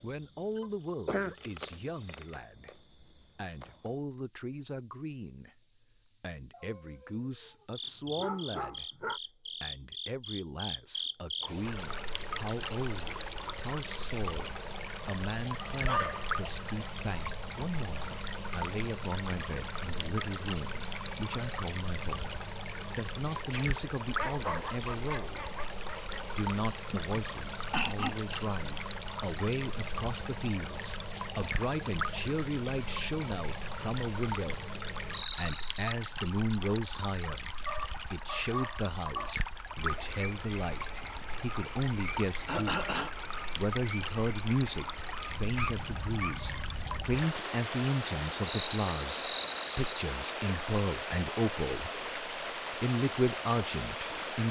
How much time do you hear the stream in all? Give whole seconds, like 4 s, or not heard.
43 s.